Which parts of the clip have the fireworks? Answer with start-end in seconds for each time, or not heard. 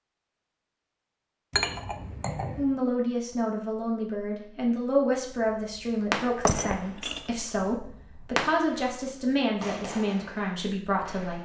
5.3-11.4.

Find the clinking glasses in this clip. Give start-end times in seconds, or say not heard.
1.5-2.8, 6.5-7.7.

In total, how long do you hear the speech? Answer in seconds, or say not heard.
9 s.